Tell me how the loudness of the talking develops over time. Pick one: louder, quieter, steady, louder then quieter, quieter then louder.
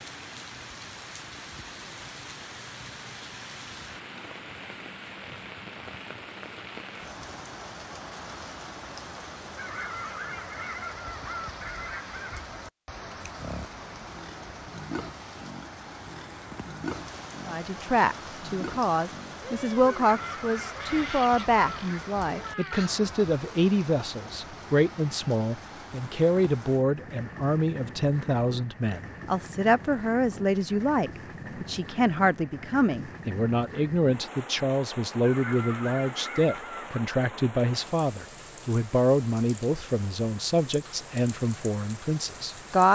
steady.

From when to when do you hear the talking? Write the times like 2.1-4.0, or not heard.
17.4-42.9.